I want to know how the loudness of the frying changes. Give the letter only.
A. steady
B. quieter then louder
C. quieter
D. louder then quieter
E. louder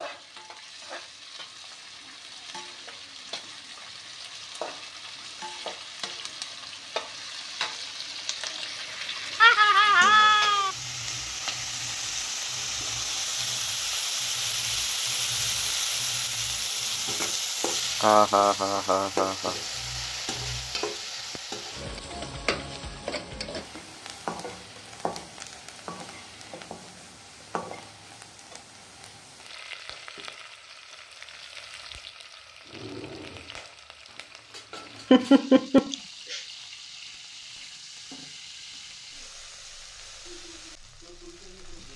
D.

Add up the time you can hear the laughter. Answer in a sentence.
You can hear the laughter for 4 seconds altogether.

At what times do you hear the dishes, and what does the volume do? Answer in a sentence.
The dishes can't be heard in this clip.